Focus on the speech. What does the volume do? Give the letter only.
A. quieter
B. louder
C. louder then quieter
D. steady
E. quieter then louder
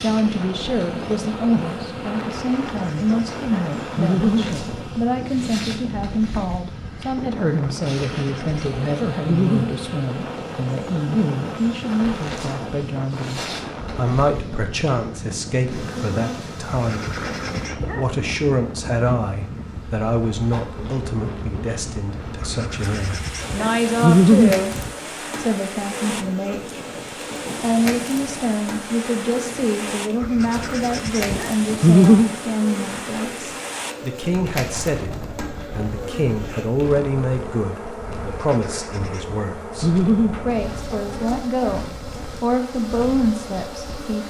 D.